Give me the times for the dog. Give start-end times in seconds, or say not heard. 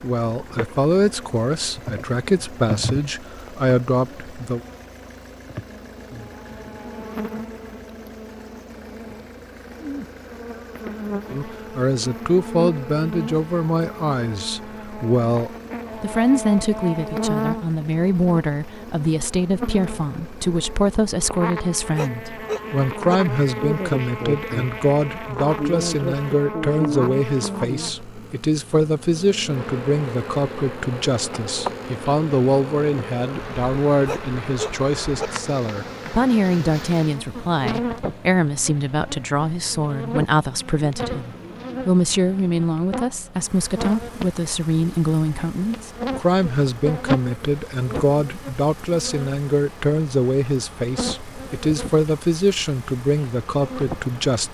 21.9-23.1, 34.0-35.3.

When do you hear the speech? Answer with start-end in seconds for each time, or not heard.
0.0-4.6, 11.3-54.4.